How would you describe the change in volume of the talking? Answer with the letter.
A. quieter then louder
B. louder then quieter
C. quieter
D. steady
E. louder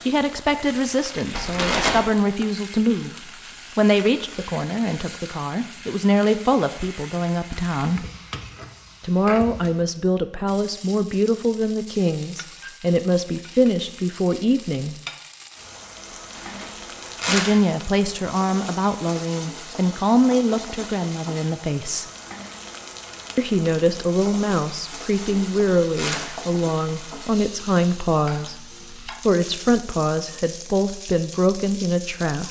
D.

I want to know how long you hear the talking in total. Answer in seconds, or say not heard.
28 s.